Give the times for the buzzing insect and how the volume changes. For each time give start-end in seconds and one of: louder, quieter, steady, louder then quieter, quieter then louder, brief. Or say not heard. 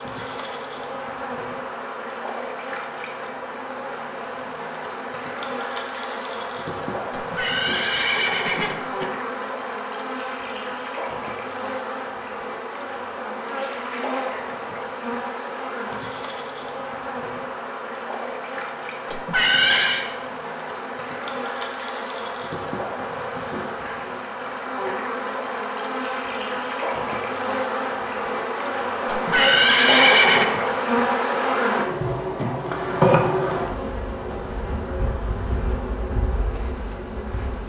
0.0-37.6 louder.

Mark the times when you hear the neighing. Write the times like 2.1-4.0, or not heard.
7.1-9.1, 19.1-20.1, 29.1-30.4.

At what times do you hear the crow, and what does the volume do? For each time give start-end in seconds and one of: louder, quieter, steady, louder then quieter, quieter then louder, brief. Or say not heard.
not heard.